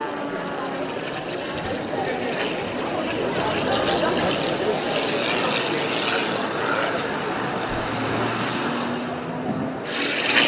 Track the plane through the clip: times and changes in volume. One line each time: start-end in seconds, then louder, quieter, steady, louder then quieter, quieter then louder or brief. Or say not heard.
0.0-10.4 louder.